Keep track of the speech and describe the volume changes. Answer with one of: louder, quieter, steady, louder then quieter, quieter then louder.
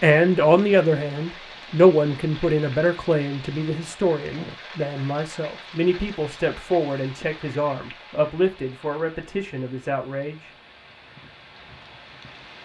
quieter.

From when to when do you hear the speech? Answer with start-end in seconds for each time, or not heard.
0.0-10.5.